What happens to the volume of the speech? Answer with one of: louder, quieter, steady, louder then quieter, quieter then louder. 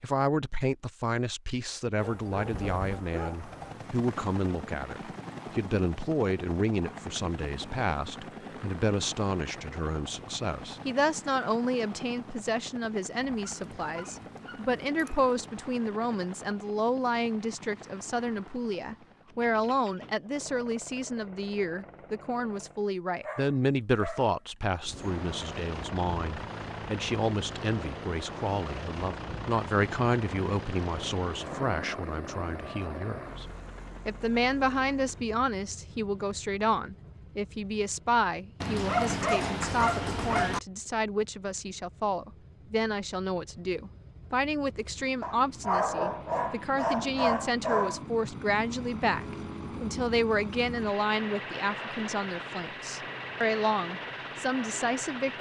steady.